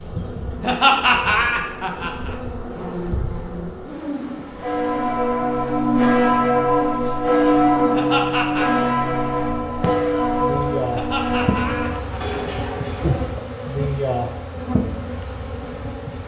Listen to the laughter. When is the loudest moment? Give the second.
1 s.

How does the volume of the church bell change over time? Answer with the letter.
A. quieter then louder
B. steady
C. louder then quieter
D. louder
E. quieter
E.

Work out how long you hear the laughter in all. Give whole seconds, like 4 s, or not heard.
4 s.